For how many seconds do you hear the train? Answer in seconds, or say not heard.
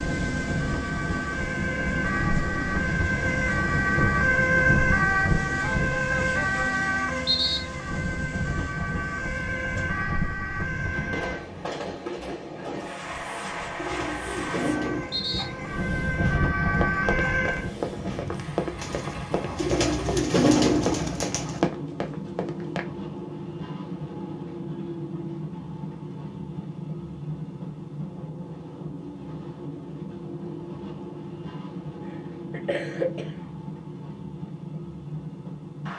36 s.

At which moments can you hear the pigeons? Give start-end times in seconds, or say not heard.
13.0-15.1, 18.8-21.6.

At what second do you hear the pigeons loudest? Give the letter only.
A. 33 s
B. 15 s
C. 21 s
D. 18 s
C.